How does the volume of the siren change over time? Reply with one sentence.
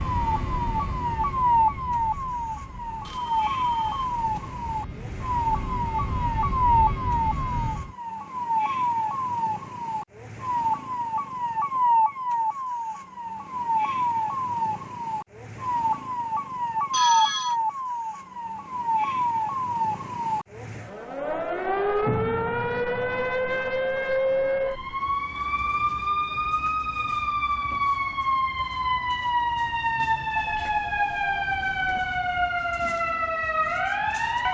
The volume of the siren stays about the same.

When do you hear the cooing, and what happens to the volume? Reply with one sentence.
The cooing can't be heard in this clip.